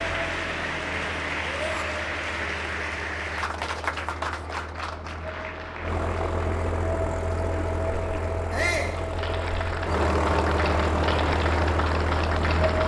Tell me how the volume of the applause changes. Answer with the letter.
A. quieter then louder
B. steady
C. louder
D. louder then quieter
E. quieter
A.